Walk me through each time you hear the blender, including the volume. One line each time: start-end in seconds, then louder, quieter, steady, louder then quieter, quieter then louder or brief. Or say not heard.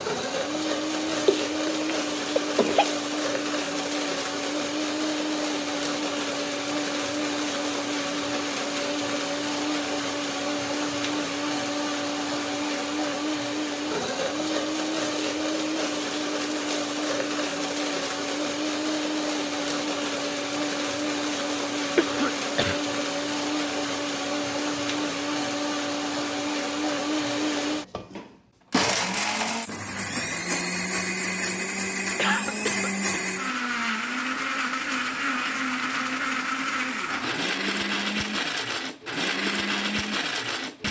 0.0-40.8 steady.